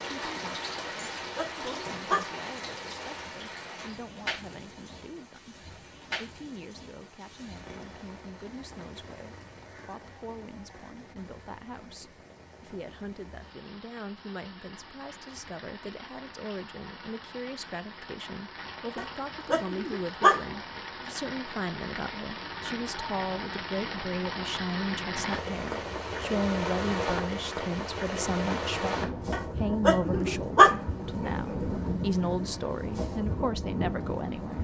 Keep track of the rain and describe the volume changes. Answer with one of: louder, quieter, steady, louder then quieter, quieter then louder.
quieter then louder.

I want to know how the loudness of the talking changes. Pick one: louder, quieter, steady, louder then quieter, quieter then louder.
louder.